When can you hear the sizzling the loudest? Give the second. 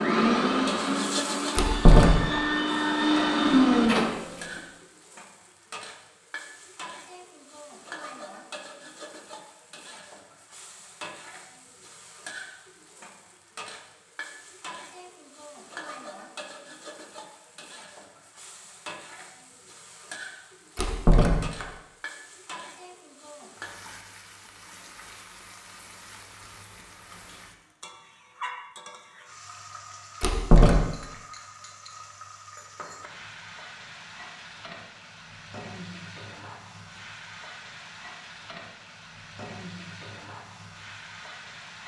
1 s.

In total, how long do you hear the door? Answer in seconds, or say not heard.
2 s.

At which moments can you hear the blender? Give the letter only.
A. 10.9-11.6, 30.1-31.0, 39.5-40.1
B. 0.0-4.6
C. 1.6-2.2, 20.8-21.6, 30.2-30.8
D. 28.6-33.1
B.